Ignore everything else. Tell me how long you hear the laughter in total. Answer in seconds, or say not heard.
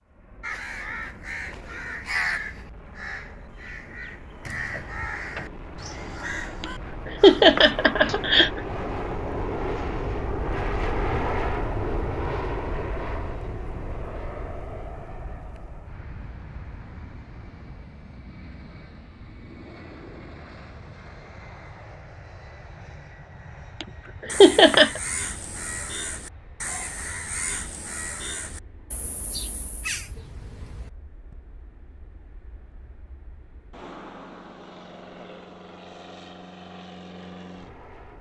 3 s.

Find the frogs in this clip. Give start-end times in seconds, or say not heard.
not heard.